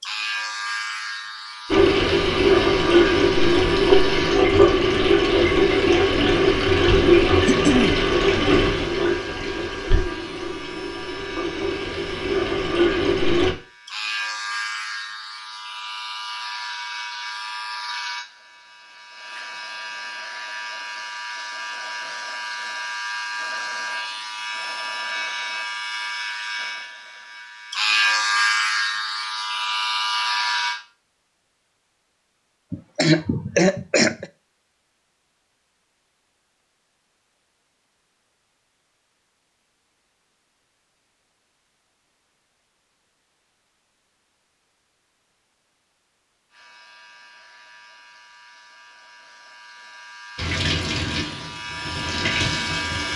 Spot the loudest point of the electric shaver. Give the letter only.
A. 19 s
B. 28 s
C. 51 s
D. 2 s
B.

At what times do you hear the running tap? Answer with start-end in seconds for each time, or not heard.
1.7-13.6, 50.4-53.1.